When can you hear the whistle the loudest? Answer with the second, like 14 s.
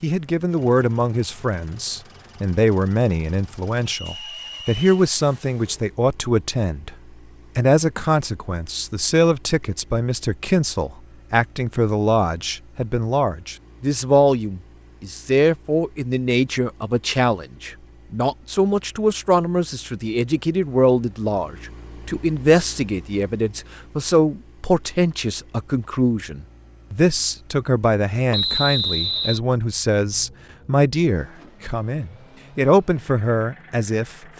29 s.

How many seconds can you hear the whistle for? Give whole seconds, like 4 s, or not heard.
2 s.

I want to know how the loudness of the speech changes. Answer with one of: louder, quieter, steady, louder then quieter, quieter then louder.
steady.